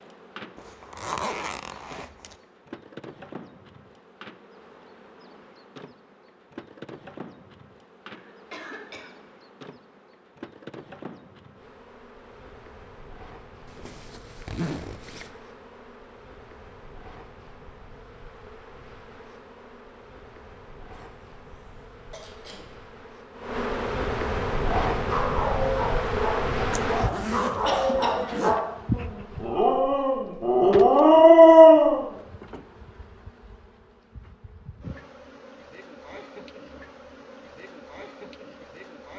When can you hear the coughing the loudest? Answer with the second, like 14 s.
28 s.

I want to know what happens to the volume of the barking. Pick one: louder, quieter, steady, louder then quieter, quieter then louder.
louder.